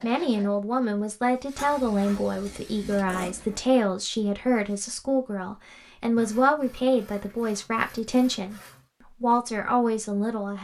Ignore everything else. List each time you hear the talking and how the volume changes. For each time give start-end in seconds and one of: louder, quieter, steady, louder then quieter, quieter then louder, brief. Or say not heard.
0.0-10.5 steady.